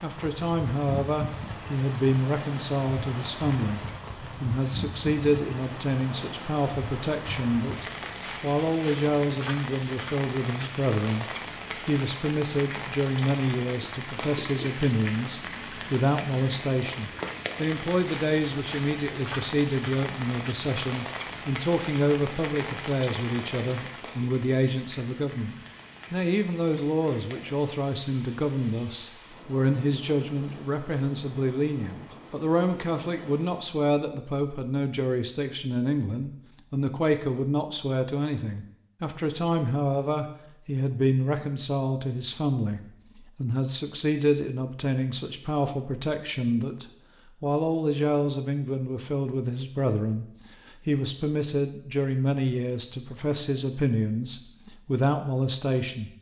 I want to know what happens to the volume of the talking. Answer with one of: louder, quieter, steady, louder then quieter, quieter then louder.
steady.